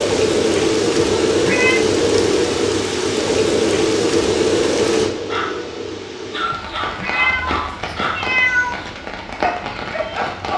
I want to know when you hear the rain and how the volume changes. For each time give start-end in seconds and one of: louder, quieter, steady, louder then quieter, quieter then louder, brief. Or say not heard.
0.0-10.5 quieter.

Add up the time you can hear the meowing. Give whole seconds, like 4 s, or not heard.
3 s.